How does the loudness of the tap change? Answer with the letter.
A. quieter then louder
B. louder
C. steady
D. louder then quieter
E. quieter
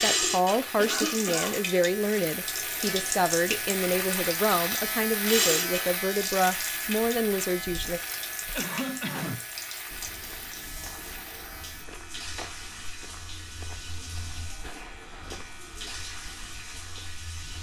E.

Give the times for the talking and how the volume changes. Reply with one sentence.
You can hear the talking from 0.0 to 8.0 s, at a steady volume.